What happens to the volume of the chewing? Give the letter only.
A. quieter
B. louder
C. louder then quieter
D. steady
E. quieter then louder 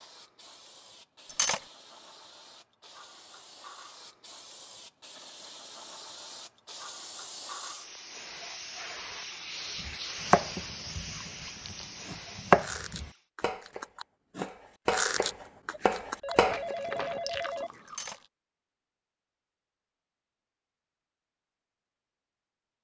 C.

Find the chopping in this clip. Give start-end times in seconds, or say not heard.
9.8-16.8.